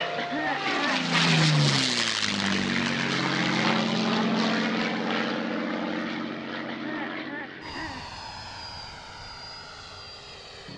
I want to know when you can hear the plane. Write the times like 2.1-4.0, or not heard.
0.0-10.7.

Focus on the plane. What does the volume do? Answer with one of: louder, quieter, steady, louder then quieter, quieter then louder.
quieter.